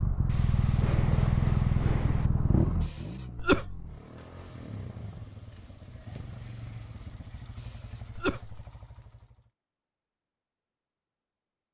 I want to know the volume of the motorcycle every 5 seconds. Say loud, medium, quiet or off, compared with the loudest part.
loud, quiet, off.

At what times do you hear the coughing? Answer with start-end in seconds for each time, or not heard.
2.8-3.9, 7.5-8.6.